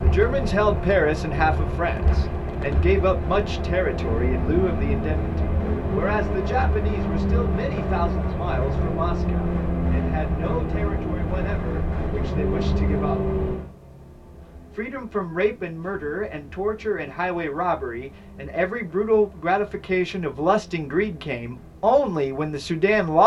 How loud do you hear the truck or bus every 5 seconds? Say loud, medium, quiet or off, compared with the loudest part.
loud, loud, loud, quiet, quiet.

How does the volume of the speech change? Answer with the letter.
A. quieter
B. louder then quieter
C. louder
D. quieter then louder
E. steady
D.